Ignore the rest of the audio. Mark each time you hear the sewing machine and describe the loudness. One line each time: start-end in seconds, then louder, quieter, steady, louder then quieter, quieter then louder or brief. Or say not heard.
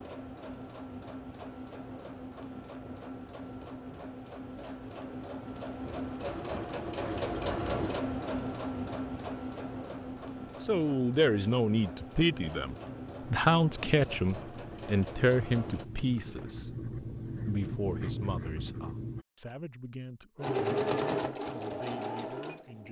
0.0-16.5 louder then quieter
20.4-22.8 brief.